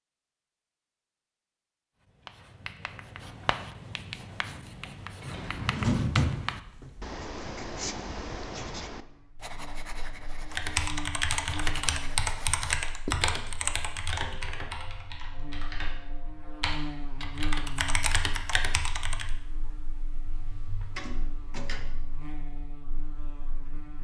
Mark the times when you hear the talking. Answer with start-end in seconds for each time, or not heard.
not heard.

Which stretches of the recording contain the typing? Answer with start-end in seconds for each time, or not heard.
10.5-19.3.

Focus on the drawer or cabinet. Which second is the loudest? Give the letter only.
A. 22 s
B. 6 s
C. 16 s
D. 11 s
B.